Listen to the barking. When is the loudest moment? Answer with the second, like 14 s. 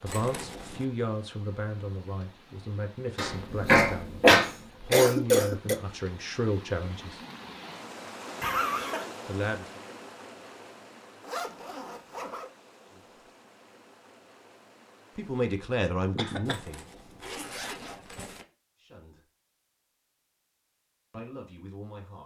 4 s.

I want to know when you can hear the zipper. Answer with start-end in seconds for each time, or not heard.
0.1-0.8, 11.2-12.5, 16.4-18.4.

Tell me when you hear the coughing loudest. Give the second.
5 s.